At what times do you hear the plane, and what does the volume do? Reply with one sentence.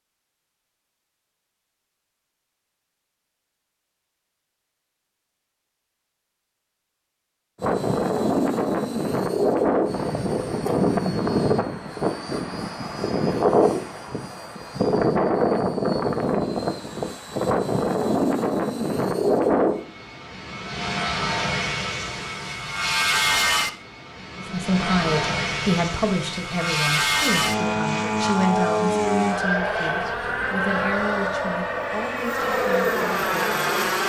The plane can be heard from 7.6 to 34.0 s, at a steady volume.